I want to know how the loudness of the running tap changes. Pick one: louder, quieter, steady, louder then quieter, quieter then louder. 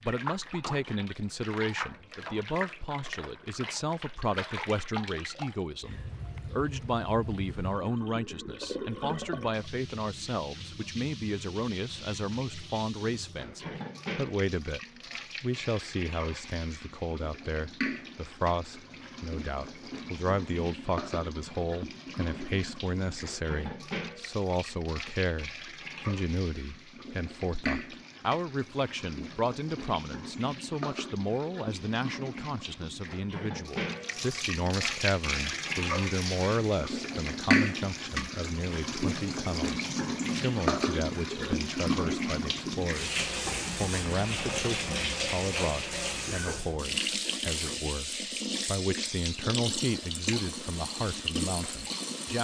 louder.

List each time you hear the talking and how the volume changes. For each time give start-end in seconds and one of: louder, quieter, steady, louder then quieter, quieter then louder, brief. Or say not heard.
0.0-52.3 steady.